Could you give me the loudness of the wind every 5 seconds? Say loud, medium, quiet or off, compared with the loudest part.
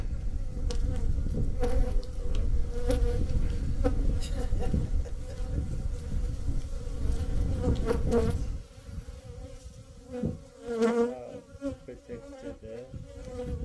loud, loud, off.